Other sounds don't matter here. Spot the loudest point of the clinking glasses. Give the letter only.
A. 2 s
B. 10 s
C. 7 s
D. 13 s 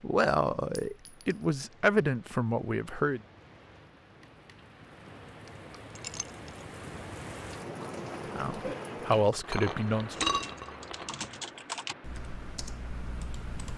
B.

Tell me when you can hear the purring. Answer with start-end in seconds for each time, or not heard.
not heard.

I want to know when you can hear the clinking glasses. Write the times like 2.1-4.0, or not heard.
0.8-1.4, 6.0-6.5, 9.3-11.4.